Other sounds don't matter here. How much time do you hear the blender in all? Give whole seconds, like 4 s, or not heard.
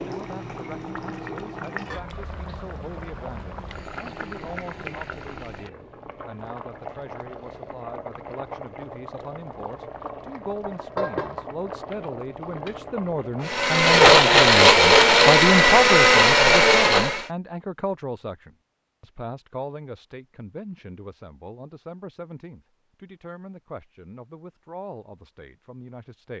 4 s.